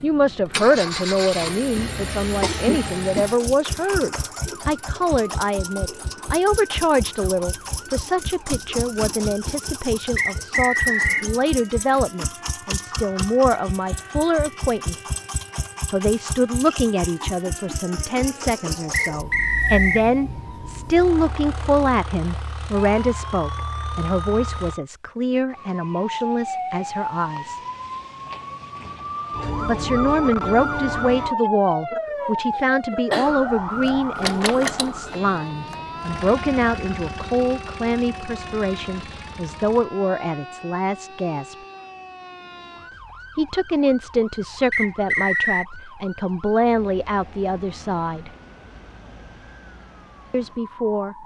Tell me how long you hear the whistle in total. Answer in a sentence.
You can hear the whistle for 3 seconds altogether.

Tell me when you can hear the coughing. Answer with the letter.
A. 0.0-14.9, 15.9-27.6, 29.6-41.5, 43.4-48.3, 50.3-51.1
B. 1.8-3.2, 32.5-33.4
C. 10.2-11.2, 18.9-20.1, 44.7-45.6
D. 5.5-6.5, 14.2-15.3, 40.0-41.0
B.